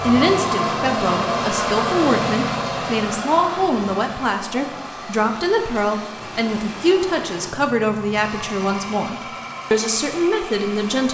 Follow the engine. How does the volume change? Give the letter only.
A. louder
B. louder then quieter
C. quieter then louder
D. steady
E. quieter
E.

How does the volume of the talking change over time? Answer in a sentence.
The loudness of the talking stays about the same.